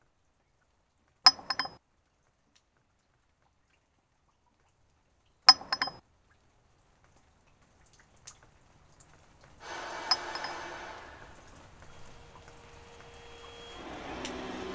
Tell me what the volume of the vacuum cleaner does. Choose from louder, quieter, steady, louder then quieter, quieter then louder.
quieter then louder.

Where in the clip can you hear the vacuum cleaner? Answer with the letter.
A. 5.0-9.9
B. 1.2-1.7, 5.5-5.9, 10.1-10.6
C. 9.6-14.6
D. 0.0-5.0
C.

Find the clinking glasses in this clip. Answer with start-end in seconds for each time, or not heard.
1.2-1.7, 5.5-5.9, 10.1-10.6.